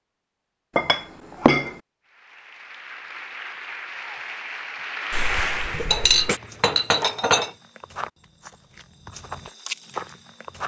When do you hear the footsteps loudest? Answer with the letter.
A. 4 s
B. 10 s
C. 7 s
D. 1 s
B.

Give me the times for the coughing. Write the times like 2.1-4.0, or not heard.
5.1-6.4.